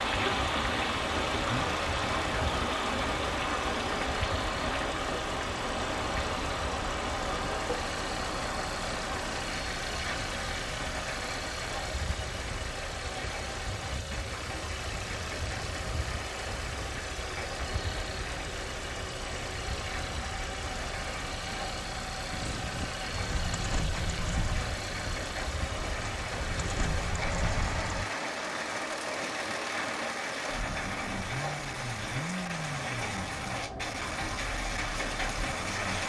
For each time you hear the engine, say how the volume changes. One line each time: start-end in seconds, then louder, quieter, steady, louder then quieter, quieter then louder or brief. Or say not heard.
0.0-36.0 steady.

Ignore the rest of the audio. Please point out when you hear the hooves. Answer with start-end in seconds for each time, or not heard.
22.3-28.1.